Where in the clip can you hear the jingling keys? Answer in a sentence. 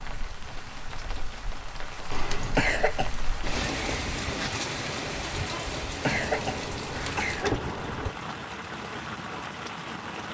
The jingling keys can be heard from 2.1 to 2.8 s and from 6.1 to 8.1 s.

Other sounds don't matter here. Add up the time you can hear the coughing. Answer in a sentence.
You can hear the coughing for 2 seconds altogether.